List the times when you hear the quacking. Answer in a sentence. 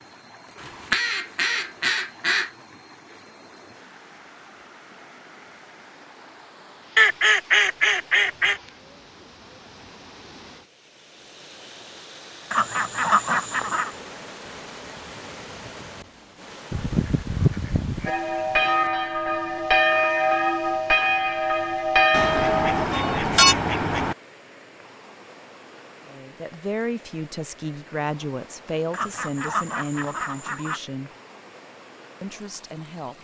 The quacking can be heard from 0.6 to 2.5 s, from 7.0 to 8.6 s, from 12.5 to 13.9 s, from 16.7 to 18.1 s, from 22.1 to 24.1 s and from 28.9 to 30.8 s.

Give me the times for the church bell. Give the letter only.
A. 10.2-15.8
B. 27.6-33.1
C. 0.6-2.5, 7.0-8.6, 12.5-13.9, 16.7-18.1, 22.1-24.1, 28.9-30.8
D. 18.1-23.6
D.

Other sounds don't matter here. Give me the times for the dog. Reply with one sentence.
The dog can't be heard in this clip.